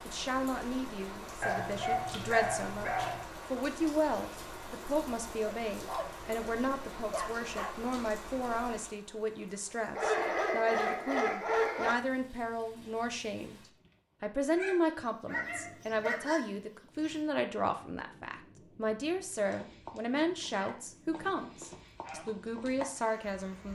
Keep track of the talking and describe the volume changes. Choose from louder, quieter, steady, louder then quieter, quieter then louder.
steady.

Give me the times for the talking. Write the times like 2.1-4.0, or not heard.
0.1-13.6, 14.2-23.6.